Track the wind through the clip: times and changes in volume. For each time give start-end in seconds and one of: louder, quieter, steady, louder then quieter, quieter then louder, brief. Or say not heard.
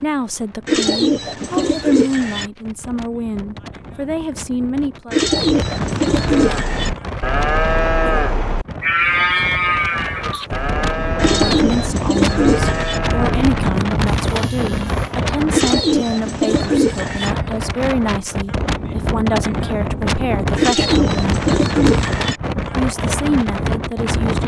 0.0-24.4 louder.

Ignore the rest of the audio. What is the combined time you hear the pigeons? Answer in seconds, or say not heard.
9 s.